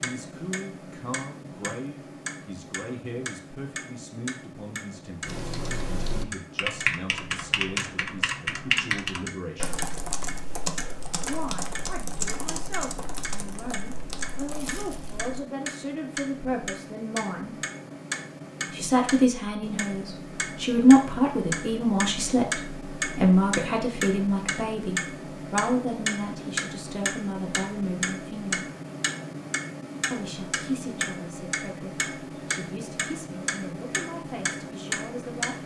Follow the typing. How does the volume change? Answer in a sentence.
The loudness of the typing goes down.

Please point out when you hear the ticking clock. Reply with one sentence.
The ticking clock can be heard from 0.0 to 35.6 s.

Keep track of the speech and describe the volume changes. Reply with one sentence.
The loudness of the speech goes up, then down.